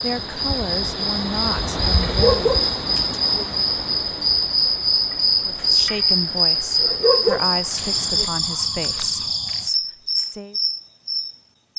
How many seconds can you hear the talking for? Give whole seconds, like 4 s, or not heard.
8 s.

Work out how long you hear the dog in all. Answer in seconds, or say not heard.
3 s.